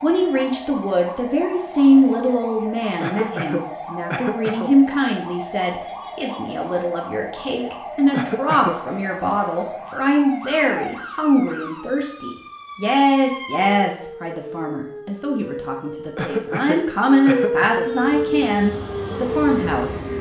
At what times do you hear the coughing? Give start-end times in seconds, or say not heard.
3.0-4.8, 8.1-8.8, 16.1-17.9.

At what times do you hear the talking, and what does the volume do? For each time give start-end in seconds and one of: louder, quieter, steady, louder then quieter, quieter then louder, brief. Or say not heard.
0.0-20.0 steady.